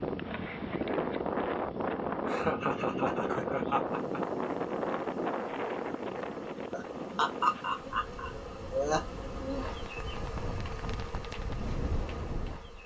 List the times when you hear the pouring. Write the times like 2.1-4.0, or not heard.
not heard.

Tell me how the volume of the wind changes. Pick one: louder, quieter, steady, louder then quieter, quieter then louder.
quieter then louder.